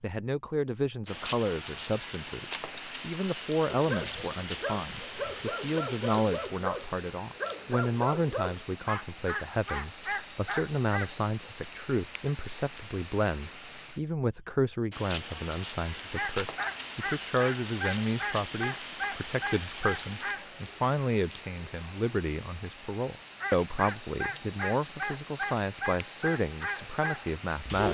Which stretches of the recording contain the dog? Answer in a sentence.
You can hear the dog from 3.7 to 11.2 s, from 15.9 to 20.5 s and from 23.4 to 27.8 s.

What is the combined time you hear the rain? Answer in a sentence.
You can hear the rain for 26 seconds altogether.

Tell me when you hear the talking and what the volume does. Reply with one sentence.
You can hear the talking from 0.0 to 27.8 s, at a steady volume.